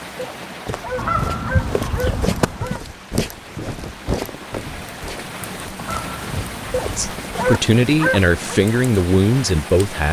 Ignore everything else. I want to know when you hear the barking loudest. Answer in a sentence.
The loudest moment of the barking is at 8 seconds.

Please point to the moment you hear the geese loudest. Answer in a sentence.
The loudest moment of the geese is at 1 second.